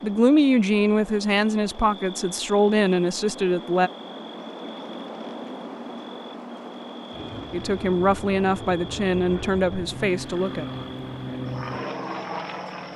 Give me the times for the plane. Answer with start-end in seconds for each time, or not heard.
7.1-12.9.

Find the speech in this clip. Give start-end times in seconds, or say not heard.
0.0-3.9, 7.5-10.7.